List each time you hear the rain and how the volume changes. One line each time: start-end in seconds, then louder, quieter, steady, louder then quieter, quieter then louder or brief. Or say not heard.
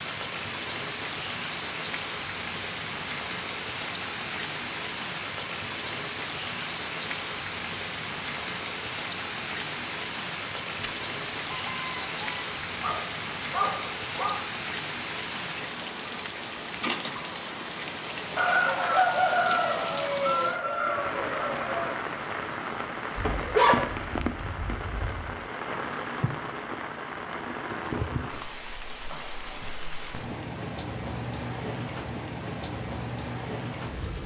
0.0-34.2 steady.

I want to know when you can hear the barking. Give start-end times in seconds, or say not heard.
12.8-14.3, 23.1-25.3.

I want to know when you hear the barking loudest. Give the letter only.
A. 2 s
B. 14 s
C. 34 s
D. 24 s
D.